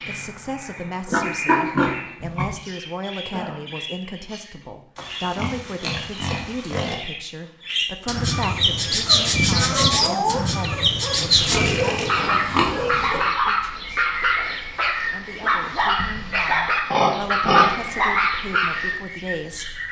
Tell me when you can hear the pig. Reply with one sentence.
You can hear the pig from 1.1 to 2.5 s, from 5.0 to 7.0 s, from 11.2 to 13.2 s and from 15.8 to 17.9 s.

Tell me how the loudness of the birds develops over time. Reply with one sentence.
The volume of the birds goes up, then down.